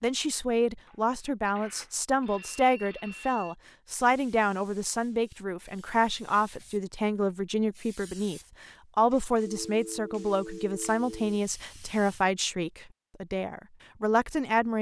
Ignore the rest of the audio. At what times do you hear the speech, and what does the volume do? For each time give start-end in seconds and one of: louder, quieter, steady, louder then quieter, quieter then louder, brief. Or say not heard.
0.0-14.7 steady.